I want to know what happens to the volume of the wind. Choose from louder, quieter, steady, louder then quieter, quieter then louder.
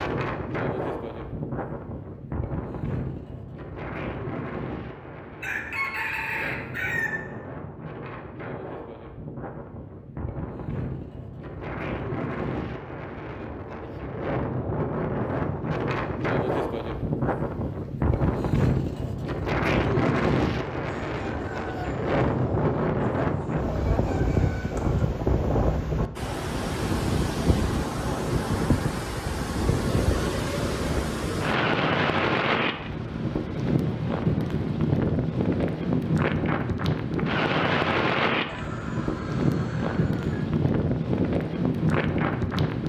louder.